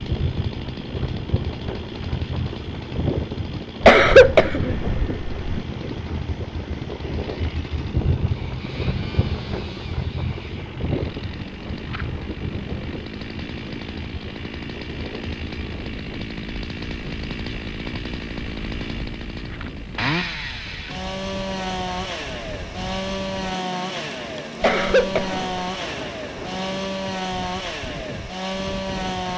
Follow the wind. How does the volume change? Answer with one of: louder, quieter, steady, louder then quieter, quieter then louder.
quieter.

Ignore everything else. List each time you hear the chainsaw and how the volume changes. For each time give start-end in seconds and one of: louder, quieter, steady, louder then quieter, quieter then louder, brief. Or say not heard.
0.0-29.3 louder.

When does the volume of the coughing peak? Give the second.
4 s.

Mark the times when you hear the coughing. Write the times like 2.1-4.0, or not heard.
3.8-5.6, 24.6-25.4.